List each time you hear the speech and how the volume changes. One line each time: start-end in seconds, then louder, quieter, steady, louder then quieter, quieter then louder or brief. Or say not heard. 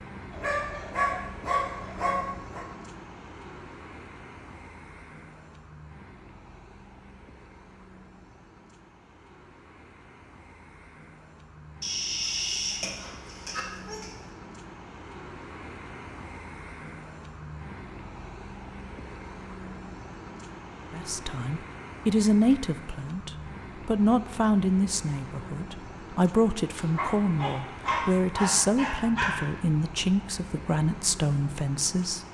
20.9-32.2 steady.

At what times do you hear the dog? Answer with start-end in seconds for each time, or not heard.
0.3-2.6, 11.8-14.1, 26.8-29.6.